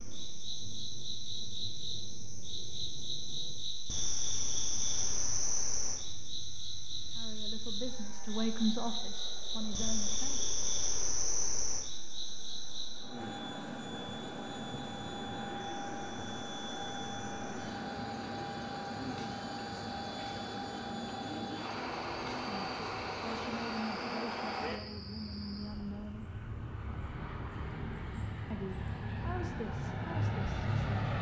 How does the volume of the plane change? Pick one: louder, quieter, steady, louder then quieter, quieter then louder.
louder.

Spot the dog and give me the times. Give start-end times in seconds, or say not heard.
not heard.